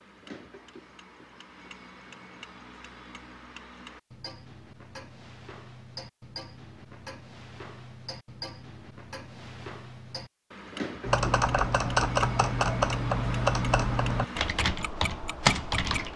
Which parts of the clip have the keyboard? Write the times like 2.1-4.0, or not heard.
11.1-16.1.